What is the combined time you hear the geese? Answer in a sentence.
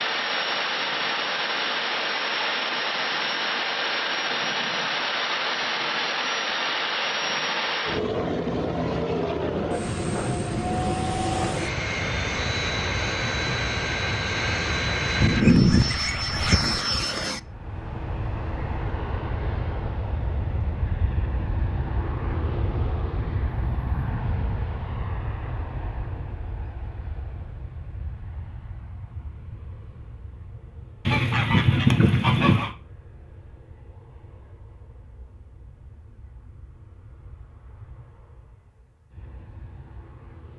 The geese can be heard for 3 seconds in total.